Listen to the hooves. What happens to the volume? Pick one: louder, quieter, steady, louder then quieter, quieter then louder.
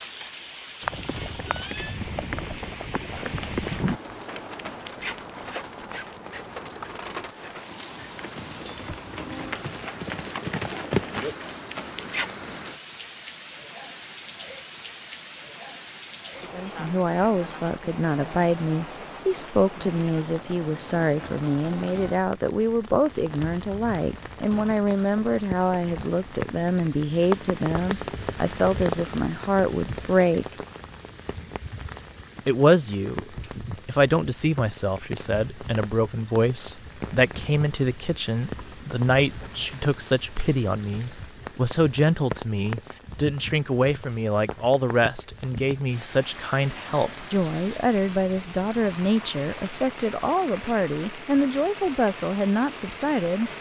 quieter then louder.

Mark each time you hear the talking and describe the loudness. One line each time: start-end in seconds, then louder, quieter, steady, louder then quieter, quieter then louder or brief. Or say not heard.
16.5-30.6 steady
32.5-53.5 steady.